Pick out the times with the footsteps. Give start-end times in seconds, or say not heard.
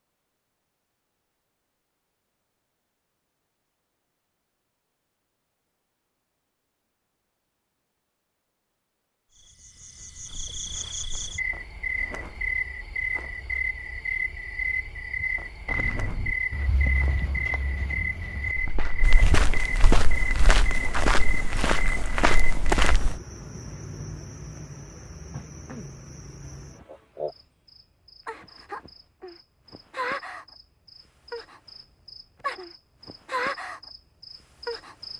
15.7-23.1.